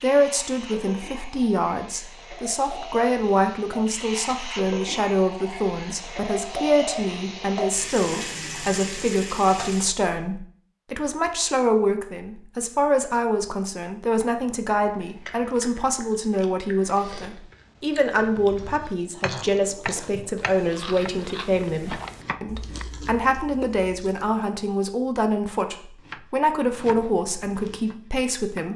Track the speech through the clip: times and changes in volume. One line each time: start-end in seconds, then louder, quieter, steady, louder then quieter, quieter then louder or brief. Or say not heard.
0.0-28.7 steady.